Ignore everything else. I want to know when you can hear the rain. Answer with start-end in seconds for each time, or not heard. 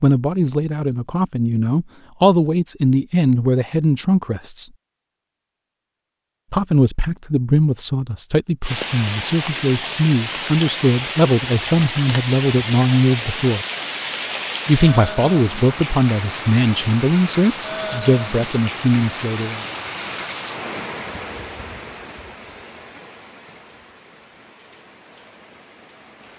8.6-26.3.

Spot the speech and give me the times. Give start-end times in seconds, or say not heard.
0.0-4.7, 6.5-13.7, 14.7-19.6.